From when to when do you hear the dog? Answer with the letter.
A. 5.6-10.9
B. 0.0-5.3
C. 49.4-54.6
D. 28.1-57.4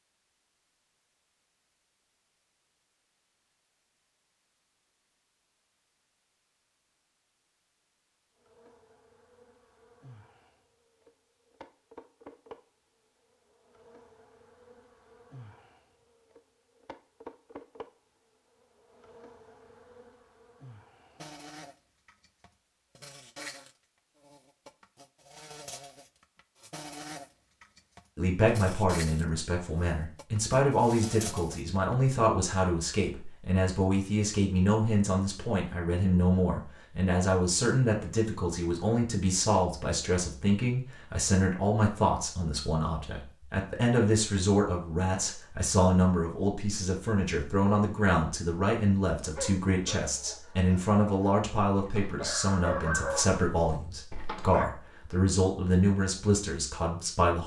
C.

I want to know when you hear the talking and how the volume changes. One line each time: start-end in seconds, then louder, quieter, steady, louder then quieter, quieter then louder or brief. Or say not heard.
28.1-57.4 steady.